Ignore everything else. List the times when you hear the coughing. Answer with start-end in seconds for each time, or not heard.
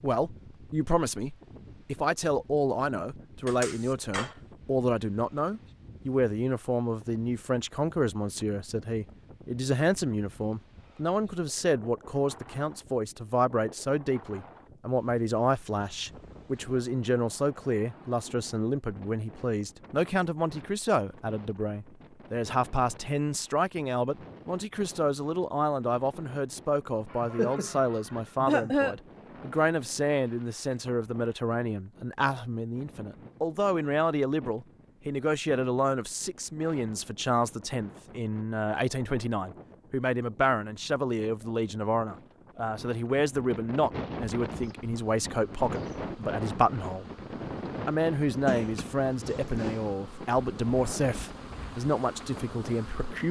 3.5-4.3, 27.1-28.9, 48.2-50.0.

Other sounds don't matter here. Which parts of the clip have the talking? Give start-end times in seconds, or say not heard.
0.0-47.0, 47.9-53.2.